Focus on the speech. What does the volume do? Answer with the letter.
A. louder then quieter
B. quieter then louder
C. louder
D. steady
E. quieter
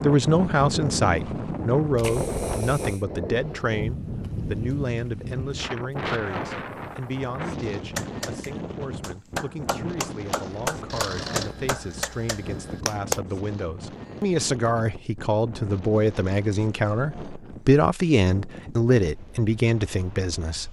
B.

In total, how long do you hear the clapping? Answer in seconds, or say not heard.
5 s.